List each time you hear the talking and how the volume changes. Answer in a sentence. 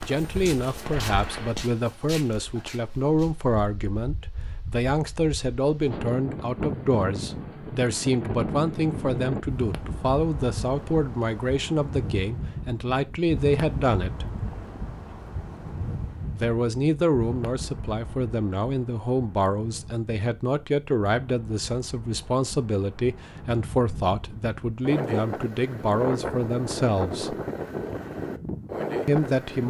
You can hear the talking from 0.1 to 14.2 s, at a steady volume; from 16.3 to 27.4 s, at a steady volume; and briefly from 29.1 to 29.6 s.